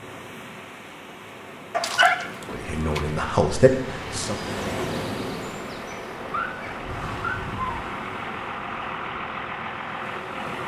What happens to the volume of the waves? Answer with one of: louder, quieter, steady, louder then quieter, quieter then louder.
louder then quieter.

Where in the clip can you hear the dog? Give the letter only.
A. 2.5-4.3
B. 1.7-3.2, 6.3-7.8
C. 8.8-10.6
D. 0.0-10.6
B.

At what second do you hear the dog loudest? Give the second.
2 s.